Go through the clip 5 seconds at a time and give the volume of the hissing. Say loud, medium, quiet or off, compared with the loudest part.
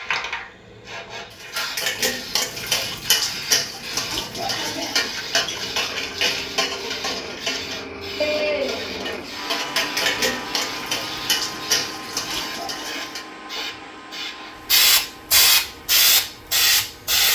quiet, quiet, medium, loud.